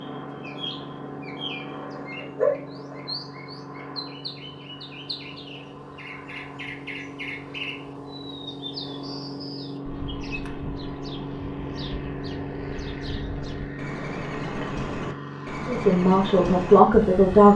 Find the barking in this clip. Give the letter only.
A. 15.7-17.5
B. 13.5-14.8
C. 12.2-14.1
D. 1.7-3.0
D.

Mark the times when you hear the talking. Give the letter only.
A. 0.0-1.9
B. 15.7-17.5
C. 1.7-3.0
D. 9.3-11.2
B.